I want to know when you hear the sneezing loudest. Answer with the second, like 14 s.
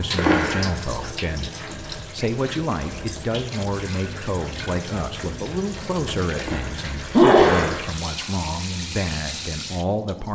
7 s.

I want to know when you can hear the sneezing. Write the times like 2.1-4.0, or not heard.
0.1-0.7, 6.4-8.2.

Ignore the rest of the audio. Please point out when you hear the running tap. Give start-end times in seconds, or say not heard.
0.0-10.3.